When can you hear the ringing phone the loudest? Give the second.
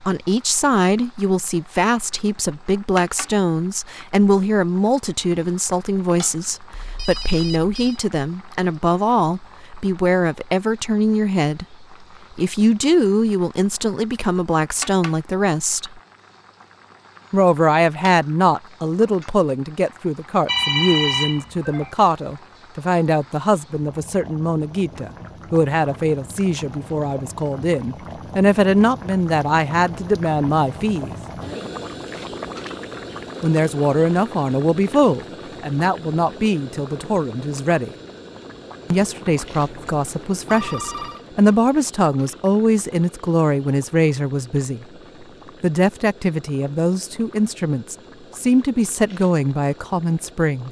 21 s.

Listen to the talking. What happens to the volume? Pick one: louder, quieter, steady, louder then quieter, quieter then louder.
steady.